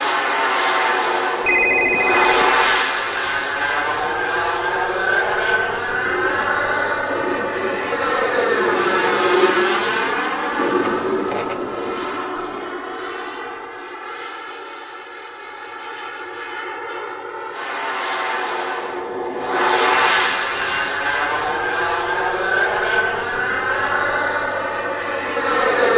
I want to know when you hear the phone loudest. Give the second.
2 s.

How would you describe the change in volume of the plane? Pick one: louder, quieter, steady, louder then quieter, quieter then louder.
quieter then louder.